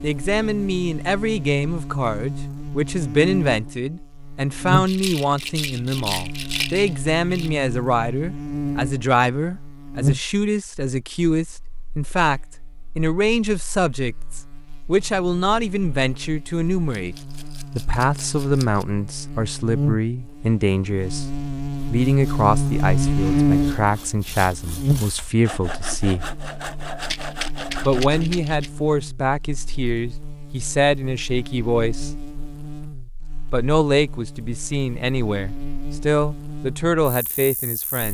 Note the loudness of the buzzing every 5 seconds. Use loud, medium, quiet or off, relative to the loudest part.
medium, medium, medium, medium, loud, quiet, quiet, quiet.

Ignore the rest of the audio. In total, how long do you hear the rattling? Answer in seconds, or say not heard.
6 s.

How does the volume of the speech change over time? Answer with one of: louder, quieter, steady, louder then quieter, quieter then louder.
steady.